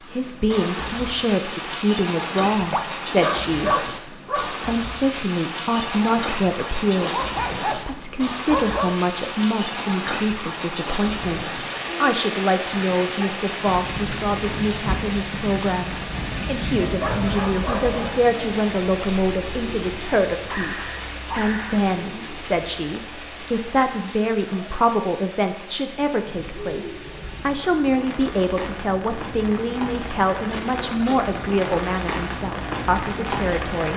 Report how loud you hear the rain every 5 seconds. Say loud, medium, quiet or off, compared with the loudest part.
loud, loud, loud, loud, medium, medium, loud.